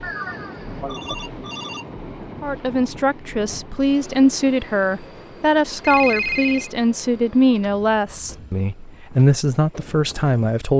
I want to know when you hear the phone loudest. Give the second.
6 s.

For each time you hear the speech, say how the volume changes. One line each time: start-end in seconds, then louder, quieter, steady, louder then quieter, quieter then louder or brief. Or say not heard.
2.4-10.7 steady.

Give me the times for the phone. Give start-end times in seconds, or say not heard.
0.0-1.9, 5.8-6.7.